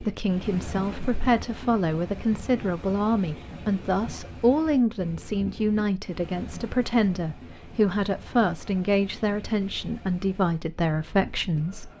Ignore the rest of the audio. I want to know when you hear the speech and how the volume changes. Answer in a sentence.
You can hear the speech from 0.0 to 11.9 s, at a steady volume.